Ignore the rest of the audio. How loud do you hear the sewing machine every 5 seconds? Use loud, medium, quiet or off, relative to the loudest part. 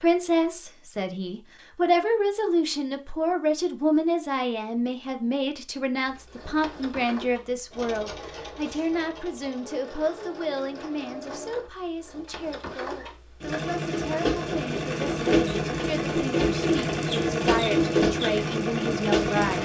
off, quiet, medium, loud.